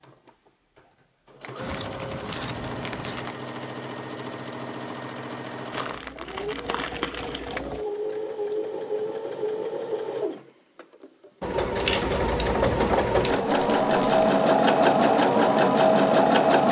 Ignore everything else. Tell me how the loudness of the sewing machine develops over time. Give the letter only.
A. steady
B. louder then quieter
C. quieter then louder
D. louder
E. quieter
D.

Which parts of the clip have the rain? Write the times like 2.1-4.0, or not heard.
not heard.